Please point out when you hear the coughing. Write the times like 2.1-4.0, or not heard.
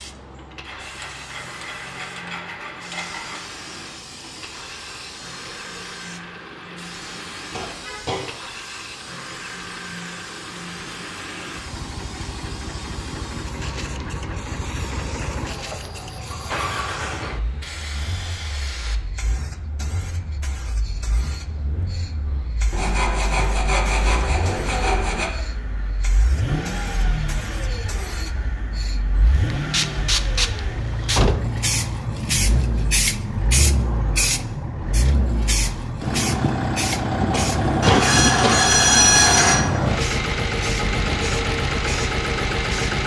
7.5-8.2, 37.3-38.7.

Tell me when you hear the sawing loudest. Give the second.
39 s.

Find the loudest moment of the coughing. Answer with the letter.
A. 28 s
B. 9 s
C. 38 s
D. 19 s
C.